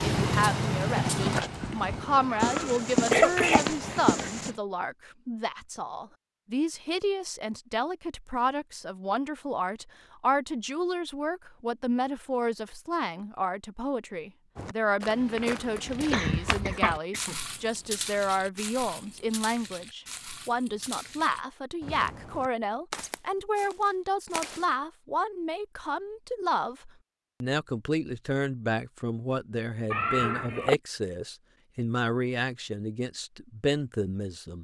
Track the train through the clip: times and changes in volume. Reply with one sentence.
You can hear the train from 0.0 to 4.6 s, getting quieter.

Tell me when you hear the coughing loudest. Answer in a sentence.
The loudest moment of the coughing is at 3 seconds.